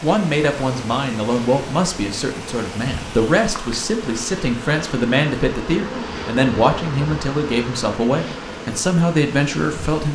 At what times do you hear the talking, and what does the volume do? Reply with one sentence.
The talking can be heard from 0.0 to 10.1 s, at a steady volume.